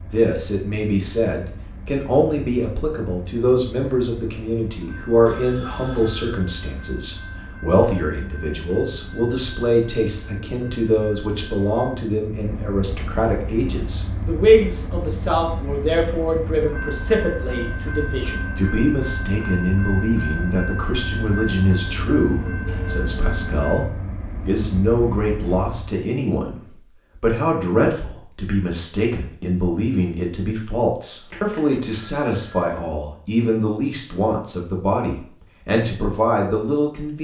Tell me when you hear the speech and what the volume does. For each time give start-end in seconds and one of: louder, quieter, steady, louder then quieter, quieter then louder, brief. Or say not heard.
0.0-37.1 steady.